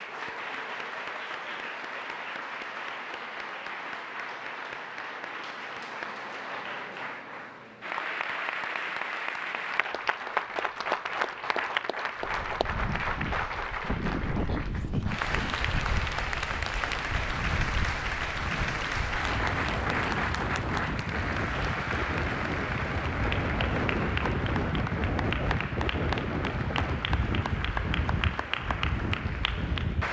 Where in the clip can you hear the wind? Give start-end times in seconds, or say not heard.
12.2-30.0.